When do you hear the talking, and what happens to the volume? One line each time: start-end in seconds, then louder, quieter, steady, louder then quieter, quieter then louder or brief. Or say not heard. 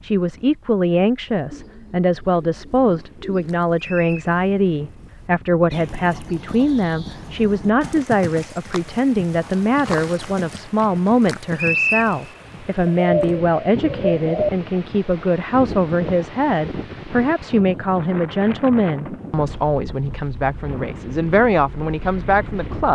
0.0-22.9 steady.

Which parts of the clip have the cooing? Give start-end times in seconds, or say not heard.
1.5-3.5, 12.8-14.5.